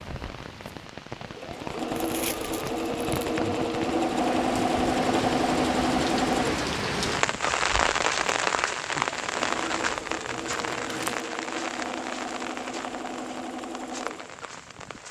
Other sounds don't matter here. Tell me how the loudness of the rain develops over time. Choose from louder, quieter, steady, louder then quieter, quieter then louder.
louder then quieter.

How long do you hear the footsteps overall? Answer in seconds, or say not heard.
not heard.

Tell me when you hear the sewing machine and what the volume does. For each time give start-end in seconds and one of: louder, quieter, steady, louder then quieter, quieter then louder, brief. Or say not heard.
0.0-15.0 louder then quieter.